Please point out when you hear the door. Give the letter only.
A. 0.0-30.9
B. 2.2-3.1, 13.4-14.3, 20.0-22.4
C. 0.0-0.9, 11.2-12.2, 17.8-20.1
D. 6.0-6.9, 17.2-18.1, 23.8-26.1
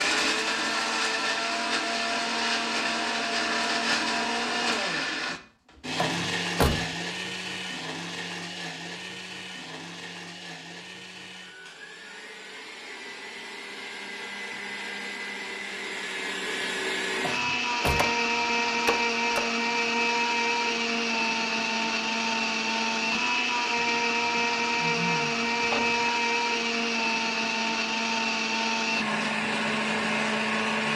D.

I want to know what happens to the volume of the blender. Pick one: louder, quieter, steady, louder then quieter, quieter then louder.
quieter then louder.